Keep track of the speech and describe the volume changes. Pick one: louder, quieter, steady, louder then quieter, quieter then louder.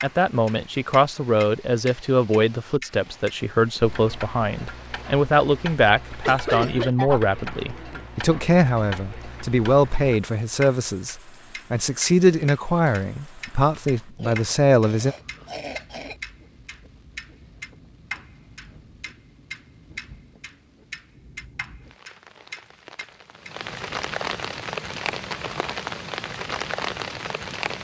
steady.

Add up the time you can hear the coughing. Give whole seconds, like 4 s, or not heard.
4 s.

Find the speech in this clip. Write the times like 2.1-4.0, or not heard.
0.0-15.2.